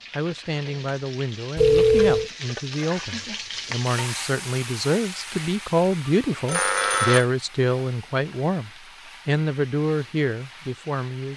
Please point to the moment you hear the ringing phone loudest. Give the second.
2 s.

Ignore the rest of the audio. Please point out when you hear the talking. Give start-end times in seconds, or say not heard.
0.1-11.3.